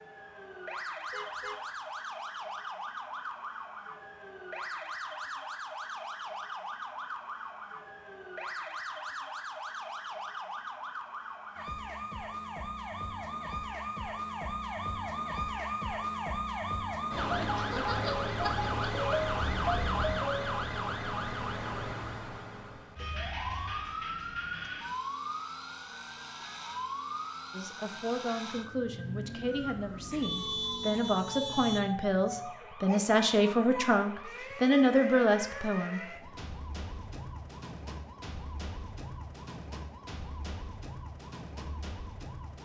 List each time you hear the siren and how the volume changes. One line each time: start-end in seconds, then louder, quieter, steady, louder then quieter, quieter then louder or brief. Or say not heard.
0.0-42.6 louder then quieter.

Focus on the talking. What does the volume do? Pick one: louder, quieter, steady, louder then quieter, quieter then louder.
louder.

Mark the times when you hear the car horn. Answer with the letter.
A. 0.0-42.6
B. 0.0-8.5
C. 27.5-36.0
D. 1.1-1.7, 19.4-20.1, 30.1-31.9
D.